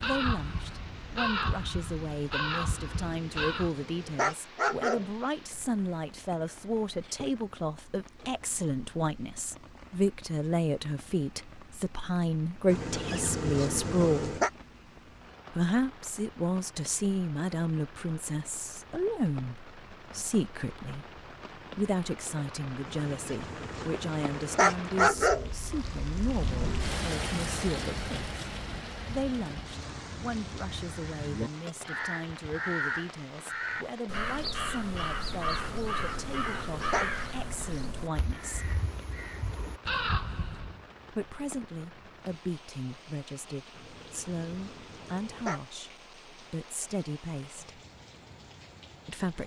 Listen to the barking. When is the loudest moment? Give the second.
25 s.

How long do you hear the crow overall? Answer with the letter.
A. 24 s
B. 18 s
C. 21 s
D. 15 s
D.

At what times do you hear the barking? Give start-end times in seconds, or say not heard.
2.7-5.1, 12.7-14.5, 22.9-25.5, 35.4-37.0, 43.8-45.6.